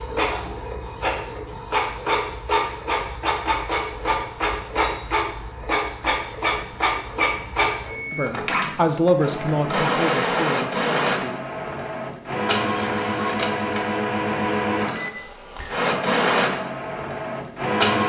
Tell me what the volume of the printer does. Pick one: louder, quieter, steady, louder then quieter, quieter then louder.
steady.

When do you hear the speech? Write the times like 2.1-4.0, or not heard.
8.1-11.4.